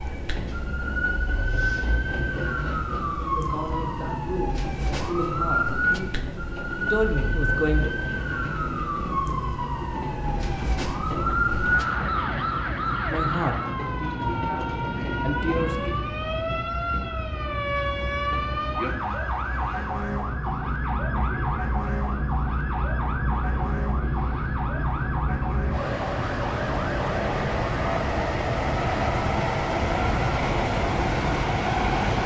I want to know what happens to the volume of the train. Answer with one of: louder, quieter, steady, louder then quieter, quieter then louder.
louder.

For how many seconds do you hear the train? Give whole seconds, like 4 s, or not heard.
32 s.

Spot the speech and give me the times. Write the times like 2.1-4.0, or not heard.
3.2-7.9, 13.1-15.9.